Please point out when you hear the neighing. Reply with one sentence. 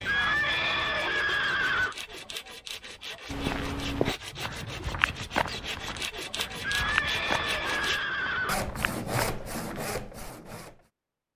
You can hear the neighing from 0.0 to 1.9 s and from 6.5 to 8.6 s.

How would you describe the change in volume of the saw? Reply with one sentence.
The volume of the saw goes up.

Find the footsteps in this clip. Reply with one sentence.
The footsteps can be heard from 3.3 to 10.3 s.